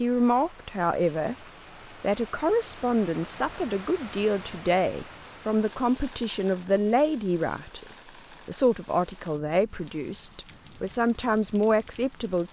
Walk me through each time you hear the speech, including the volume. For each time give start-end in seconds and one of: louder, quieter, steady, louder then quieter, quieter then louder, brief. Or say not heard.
0.0-1.4 brief
2.0-12.4 steady.